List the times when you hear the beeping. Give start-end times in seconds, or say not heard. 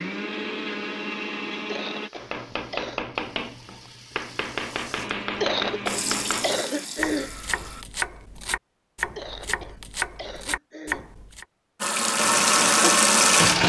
not heard.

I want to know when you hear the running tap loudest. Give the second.
13 s.